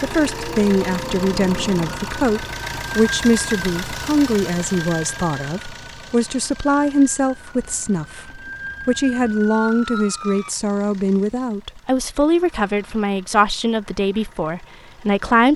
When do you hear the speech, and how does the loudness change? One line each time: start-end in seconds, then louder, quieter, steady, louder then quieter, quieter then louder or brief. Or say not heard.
0.0-15.5 steady.